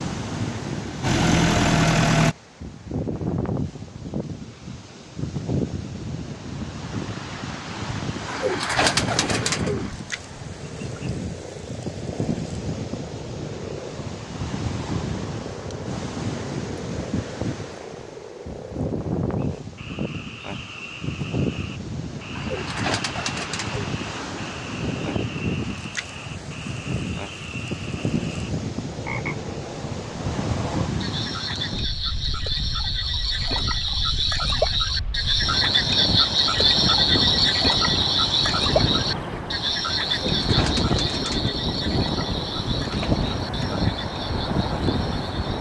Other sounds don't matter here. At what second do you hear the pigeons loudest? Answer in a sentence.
The volume of the pigeons peaks at 9 seconds.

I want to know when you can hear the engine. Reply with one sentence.
You can hear the engine from 0.0 to 2.4 s.